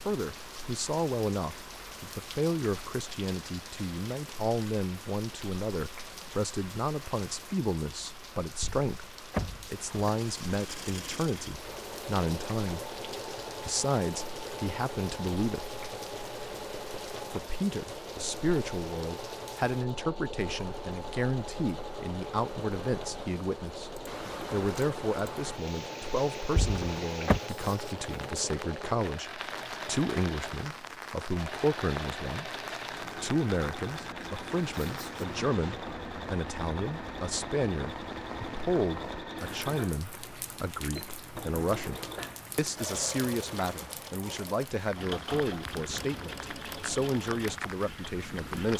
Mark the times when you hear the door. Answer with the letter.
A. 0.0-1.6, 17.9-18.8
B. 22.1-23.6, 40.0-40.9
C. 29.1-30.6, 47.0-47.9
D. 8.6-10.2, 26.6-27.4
D.